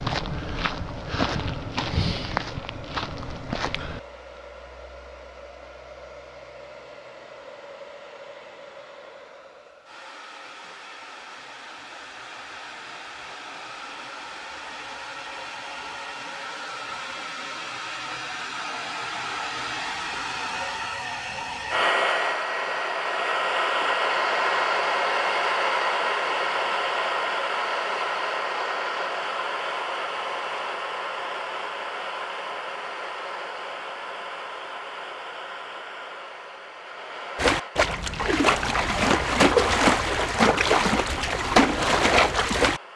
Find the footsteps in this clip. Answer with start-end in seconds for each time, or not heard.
0.0-4.4.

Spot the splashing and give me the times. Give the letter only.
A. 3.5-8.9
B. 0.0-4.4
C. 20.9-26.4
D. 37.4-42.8
D.